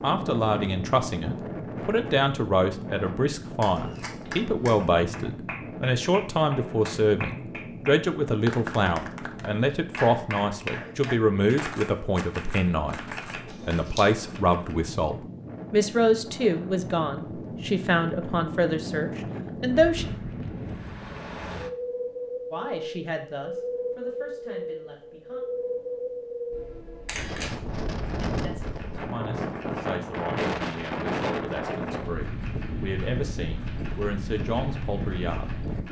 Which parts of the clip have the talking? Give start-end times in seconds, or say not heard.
0.0-20.1, 22.5-25.4, 28.2-35.6.